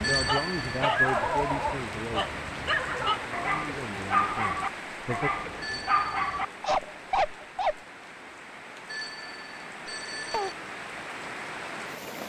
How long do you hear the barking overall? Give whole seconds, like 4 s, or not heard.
8 s.